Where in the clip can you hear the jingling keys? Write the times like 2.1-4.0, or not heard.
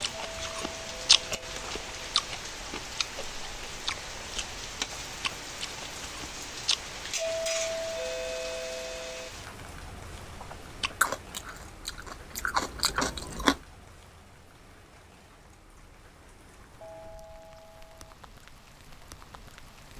not heard.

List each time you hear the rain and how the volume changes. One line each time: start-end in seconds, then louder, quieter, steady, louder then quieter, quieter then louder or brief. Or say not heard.
0.0-19.9 quieter.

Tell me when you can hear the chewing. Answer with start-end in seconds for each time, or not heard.
0.0-6.8, 10.4-13.6.